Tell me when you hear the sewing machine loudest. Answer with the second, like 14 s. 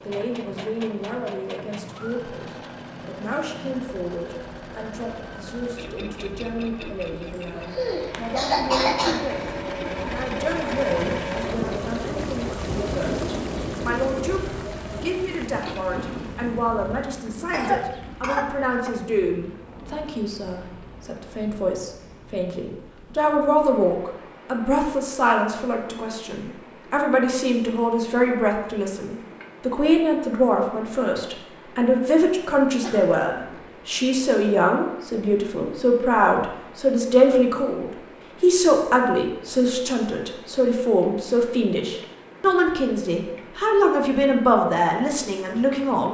11 s.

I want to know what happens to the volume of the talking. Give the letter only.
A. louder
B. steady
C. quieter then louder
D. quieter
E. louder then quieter
A.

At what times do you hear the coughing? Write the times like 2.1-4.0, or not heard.
7.5-9.2, 17.5-18.9, 32.8-33.6.